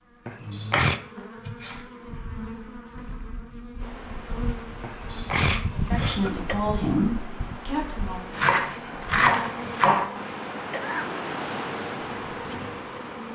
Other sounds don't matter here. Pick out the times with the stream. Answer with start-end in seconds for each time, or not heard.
3.8-13.3.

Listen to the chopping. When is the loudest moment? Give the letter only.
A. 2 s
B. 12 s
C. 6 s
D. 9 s
D.